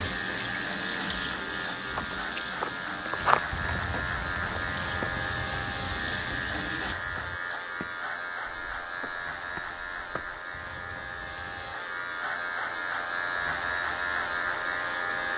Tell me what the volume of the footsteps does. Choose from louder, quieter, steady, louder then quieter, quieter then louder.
quieter.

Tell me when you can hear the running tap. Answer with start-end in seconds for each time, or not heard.
0.0-7.0.